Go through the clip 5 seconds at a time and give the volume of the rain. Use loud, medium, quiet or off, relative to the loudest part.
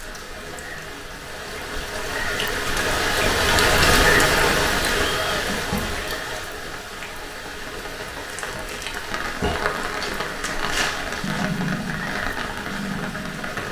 loud, medium, medium.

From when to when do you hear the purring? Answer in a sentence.
You can hear the purring from 11.2 to 13.6 s.